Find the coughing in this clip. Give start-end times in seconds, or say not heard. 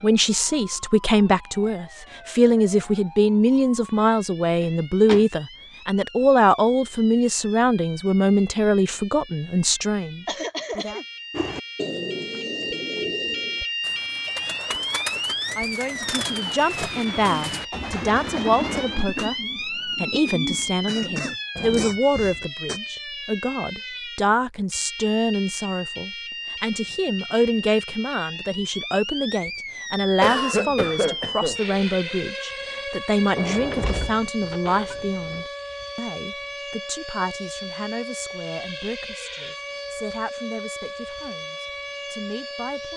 10.2-11.1, 20.9-22.8, 30.2-31.6.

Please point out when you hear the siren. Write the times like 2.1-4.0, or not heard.
0.0-42.9.